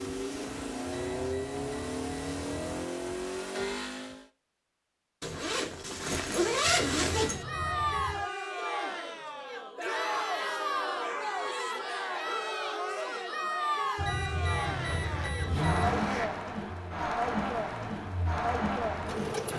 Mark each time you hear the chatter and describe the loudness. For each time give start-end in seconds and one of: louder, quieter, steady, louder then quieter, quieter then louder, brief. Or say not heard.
7.2-19.5 steady.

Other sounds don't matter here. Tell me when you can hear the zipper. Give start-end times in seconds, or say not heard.
5.2-7.5, 14.7-16.4.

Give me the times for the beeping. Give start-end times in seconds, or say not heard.
0.8-2.9, 6.7-8.2, 13.9-16.0.